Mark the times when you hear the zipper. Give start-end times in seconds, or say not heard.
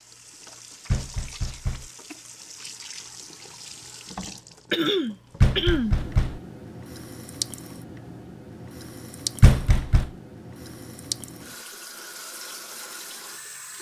not heard.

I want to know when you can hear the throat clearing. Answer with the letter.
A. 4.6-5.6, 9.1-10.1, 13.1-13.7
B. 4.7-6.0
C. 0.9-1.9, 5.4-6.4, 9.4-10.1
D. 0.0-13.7
B.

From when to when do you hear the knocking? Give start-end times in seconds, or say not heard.
0.9-1.9, 5.4-6.4, 9.4-10.1.